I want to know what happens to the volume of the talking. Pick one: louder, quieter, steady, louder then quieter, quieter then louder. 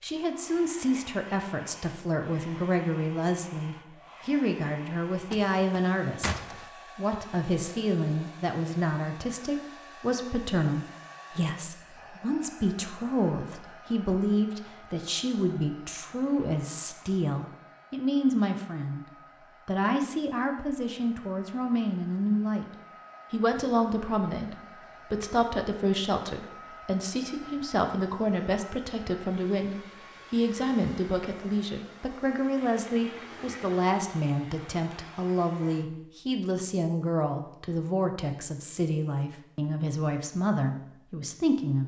steady.